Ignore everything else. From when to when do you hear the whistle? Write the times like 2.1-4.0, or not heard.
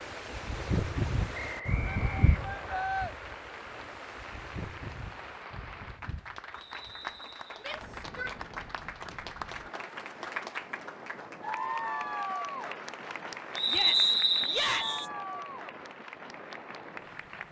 1.3-2.9, 6.5-7.7, 13.6-15.1.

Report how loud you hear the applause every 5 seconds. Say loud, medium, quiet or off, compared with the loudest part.
medium, medium, loud, medium.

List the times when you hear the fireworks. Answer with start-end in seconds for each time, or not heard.
not heard.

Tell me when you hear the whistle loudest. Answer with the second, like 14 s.
14 s.